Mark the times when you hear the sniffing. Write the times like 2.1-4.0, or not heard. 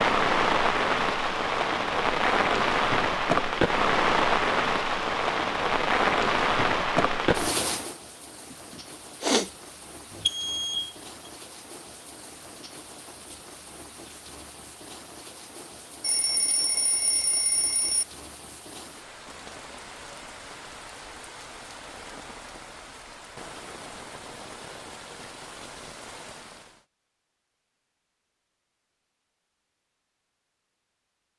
8.5-9.5.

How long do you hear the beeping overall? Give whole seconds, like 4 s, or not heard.
3 s.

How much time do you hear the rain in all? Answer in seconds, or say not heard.
27 s.